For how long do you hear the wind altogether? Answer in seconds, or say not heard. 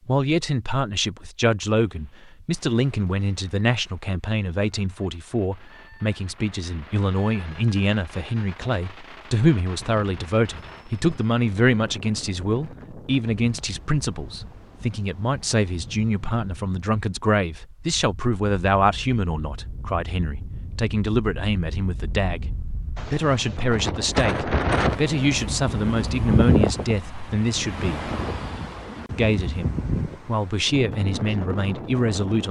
23 s.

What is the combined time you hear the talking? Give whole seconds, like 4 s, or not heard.
31 s.